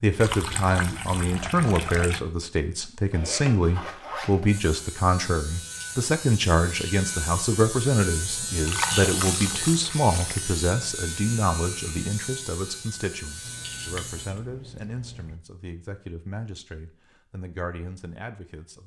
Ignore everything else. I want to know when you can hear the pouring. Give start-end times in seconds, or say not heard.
0.2-2.2, 8.7-10.6, 13.4-15.4.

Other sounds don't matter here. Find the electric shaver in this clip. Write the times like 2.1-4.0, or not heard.
4.5-14.3.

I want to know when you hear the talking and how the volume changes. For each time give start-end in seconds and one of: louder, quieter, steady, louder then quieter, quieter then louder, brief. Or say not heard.
0.0-18.8 quieter.